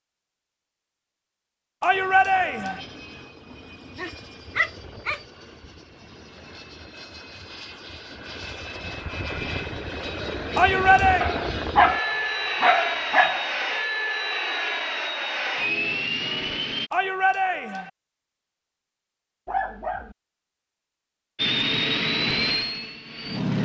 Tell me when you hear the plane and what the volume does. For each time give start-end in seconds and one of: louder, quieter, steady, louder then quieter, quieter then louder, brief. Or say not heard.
1.9-16.9 louder
21.4-23.6 brief.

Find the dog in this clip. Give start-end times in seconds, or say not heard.
3.5-5.2, 11.2-13.5, 19.4-20.1.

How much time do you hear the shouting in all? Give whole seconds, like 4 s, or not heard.
3 s.